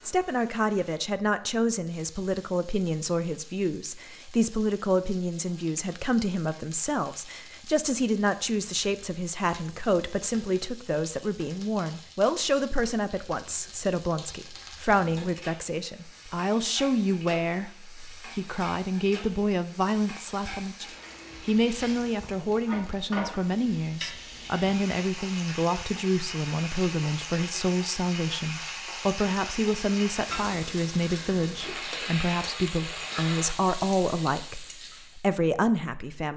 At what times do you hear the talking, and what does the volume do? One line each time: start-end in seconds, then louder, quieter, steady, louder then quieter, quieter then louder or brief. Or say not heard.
0.1-36.3 steady.